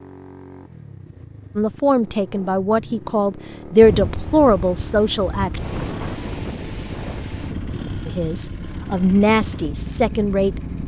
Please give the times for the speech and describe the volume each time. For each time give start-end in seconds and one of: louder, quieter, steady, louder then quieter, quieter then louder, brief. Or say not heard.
1.6-5.6 louder then quieter
8.1-10.8 brief.